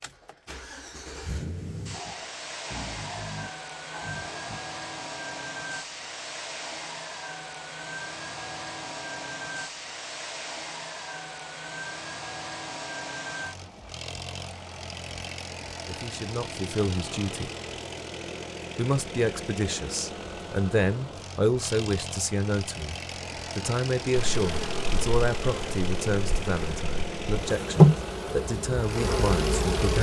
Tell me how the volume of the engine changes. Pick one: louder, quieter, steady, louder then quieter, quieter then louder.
steady.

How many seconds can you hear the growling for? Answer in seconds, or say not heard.
3 s.